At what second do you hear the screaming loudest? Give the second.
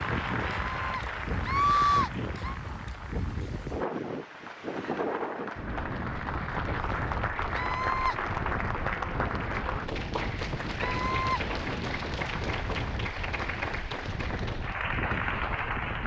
2 s.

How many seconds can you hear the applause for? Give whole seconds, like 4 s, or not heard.
16 s.